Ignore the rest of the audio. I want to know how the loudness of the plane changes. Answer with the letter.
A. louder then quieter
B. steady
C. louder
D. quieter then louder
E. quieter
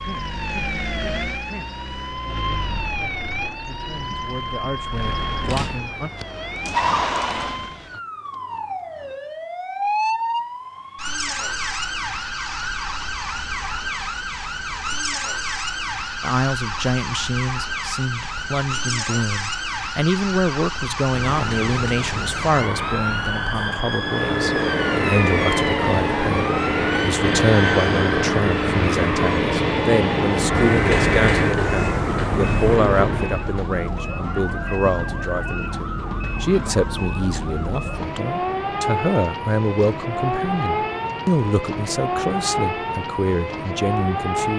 B.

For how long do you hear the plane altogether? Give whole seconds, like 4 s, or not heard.
10 s.